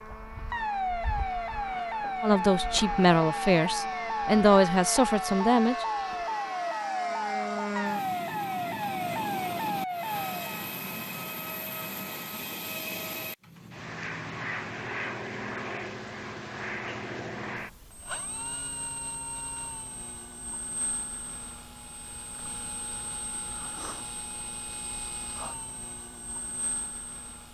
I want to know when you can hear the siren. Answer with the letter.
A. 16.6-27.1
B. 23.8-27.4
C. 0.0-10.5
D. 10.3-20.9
C.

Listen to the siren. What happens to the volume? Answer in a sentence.
The loudness of the siren stays about the same.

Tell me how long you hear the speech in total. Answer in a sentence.
You can hear the speech for 4 seconds altogether.